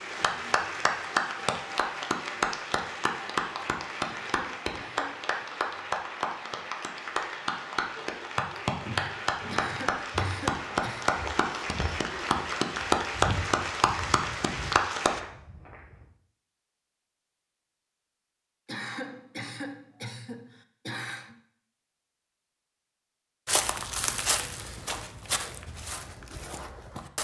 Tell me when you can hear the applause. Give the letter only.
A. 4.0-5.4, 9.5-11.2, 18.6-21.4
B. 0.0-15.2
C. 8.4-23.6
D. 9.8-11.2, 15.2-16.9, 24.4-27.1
B.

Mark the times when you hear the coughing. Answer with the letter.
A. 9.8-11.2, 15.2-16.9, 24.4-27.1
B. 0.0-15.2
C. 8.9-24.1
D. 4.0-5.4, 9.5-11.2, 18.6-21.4
D.